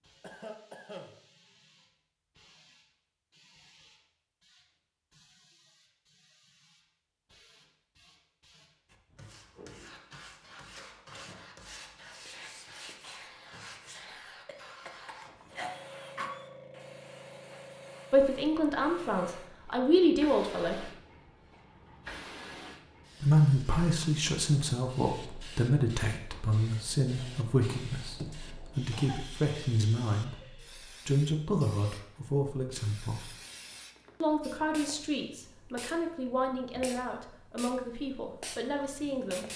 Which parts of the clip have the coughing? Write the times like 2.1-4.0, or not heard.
0.2-1.1, 14.4-16.5, 28.9-29.6.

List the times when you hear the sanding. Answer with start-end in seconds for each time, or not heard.
8.8-14.1.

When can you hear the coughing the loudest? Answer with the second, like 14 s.
16 s.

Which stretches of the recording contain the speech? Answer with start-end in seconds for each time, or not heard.
18.1-20.9, 23.2-33.3, 34.2-39.5.